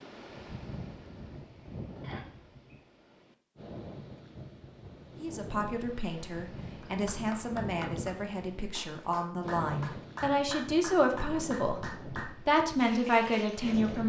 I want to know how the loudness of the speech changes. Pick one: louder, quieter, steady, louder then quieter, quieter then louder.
louder.